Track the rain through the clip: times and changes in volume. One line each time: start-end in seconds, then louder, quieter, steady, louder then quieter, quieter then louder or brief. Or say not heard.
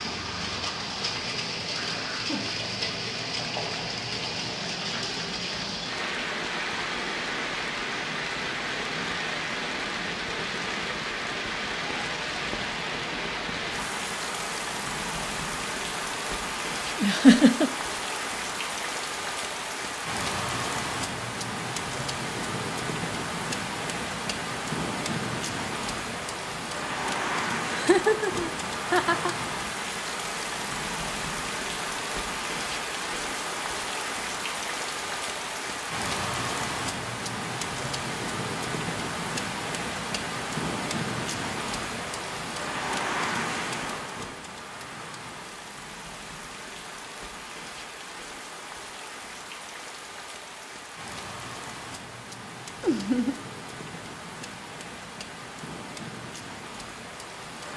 0.0-57.7 quieter.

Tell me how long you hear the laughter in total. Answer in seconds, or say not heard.
3 s.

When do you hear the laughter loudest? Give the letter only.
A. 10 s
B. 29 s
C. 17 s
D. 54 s
C.